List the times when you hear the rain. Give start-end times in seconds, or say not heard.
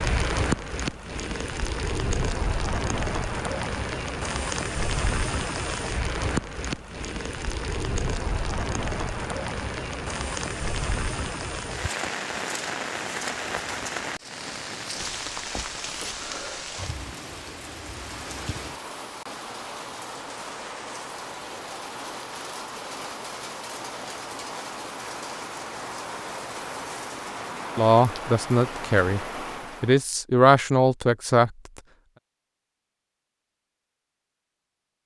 0.0-30.1.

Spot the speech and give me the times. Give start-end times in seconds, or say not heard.
27.8-31.5.